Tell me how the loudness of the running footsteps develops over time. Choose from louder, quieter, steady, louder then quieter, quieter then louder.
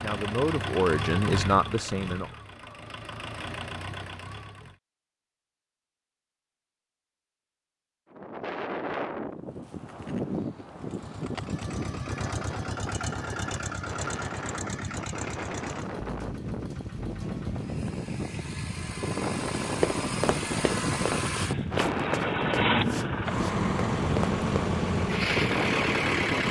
quieter.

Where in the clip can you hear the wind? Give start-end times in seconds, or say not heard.
8.1-26.4.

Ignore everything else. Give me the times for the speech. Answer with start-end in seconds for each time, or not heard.
0.0-2.3.